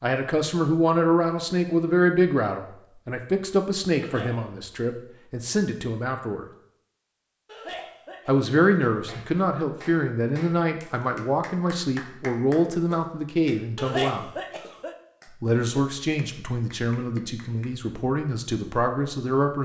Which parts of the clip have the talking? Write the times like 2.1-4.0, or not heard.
0.0-6.5, 8.2-14.3, 15.4-19.6.